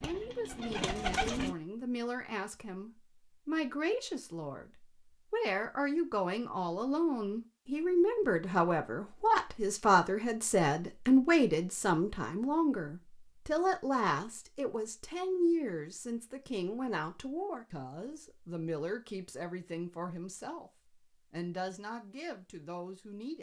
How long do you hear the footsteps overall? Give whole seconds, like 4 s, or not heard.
not heard.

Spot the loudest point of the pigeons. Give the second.
1 s.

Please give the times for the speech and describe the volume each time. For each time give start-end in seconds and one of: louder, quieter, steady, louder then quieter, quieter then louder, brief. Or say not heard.
0.0-23.3 louder then quieter.